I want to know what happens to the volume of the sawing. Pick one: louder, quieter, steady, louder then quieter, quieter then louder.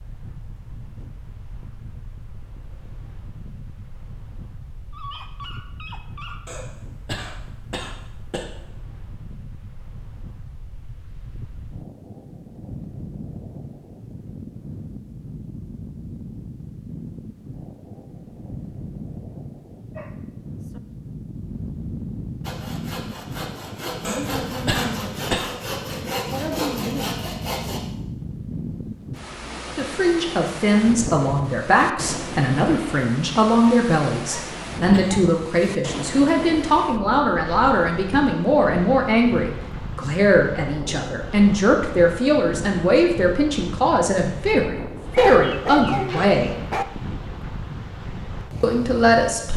louder.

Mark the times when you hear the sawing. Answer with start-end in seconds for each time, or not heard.
22.4-27.8.